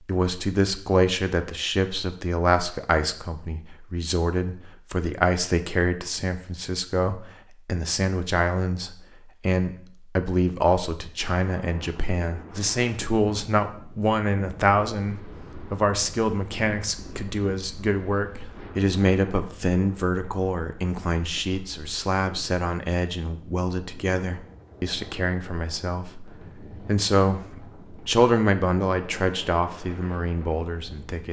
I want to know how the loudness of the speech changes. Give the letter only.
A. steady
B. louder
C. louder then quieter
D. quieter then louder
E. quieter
A.